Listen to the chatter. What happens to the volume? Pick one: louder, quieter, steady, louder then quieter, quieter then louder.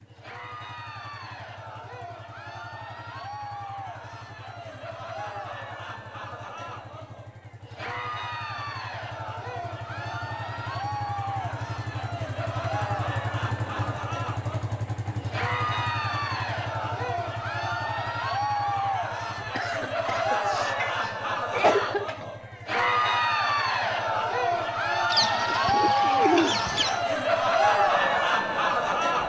louder.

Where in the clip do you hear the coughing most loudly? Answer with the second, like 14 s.
22 s.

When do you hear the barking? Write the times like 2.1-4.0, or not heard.
not heard.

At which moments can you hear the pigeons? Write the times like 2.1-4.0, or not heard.
25.1-27.1.